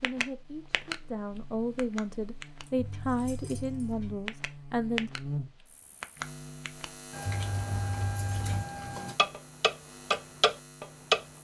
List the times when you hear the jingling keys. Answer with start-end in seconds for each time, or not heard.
2.6-4.0, 7.1-9.2.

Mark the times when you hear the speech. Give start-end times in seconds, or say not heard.
0.0-5.1.